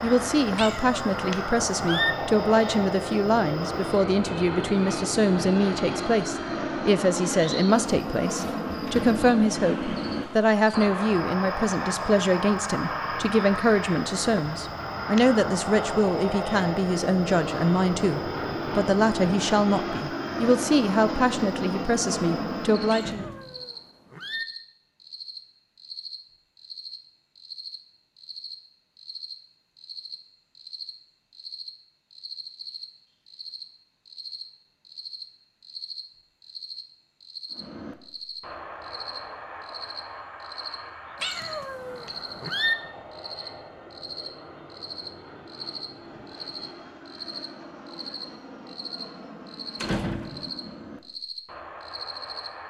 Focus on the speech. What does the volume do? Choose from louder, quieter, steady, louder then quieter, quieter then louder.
steady.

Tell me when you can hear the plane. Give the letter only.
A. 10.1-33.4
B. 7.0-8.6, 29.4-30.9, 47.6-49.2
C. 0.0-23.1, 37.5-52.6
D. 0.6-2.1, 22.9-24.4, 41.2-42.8
C.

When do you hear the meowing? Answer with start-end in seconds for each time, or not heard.
0.6-2.1, 22.9-24.4, 41.2-42.8.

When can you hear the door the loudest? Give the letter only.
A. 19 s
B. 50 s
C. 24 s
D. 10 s
B.